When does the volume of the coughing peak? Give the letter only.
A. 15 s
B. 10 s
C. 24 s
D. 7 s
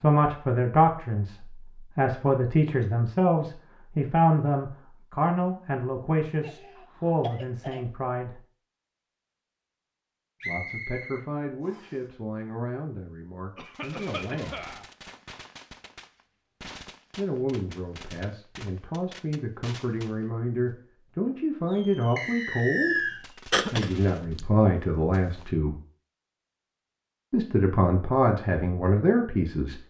C.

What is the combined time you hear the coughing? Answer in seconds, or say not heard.
5 s.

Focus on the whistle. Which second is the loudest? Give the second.
23 s.